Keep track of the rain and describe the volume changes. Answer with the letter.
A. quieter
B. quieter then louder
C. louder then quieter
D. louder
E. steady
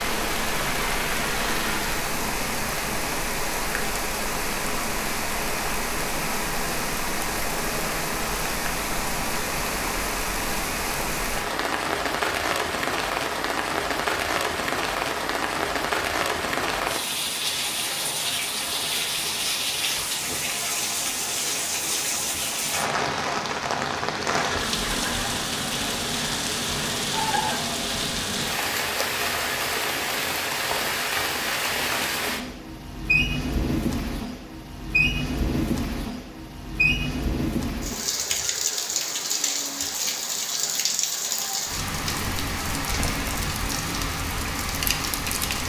E.